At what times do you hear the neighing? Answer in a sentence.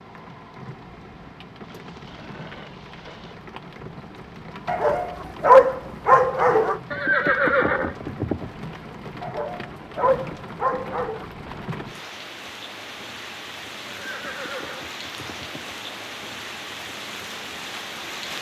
The neighing can be heard from 1.6 to 3.4 s, from 6.9 to 8.5 s and from 13.8 to 15.8 s.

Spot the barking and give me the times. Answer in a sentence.
You can hear the barking from 4.7 to 6.8 s and from 9.2 to 11.2 s.